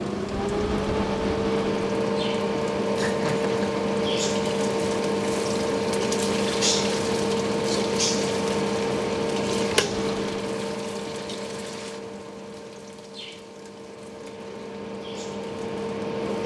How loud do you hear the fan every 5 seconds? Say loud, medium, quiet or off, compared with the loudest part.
loud, loud, medium, medium.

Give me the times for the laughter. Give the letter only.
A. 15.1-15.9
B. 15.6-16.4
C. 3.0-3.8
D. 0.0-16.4
C.